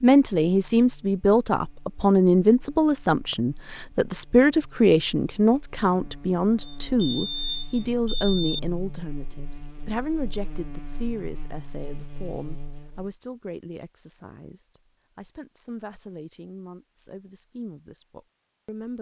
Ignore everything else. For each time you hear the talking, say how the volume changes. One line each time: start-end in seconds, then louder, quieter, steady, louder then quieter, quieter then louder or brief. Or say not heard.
0.0-18.9 quieter.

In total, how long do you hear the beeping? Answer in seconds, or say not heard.
2 s.